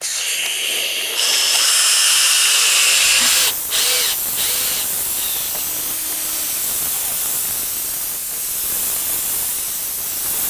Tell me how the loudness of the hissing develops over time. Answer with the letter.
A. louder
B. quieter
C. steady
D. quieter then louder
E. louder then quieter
B.